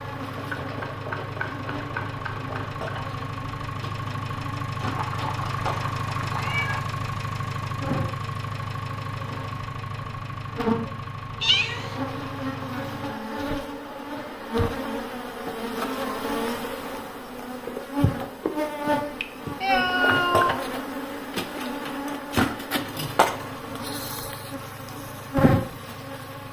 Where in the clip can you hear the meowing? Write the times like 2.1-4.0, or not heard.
4.8-6.8, 11.4-12.0, 18.9-20.6.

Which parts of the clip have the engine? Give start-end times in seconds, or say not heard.
0.0-13.2, 22.6-26.4.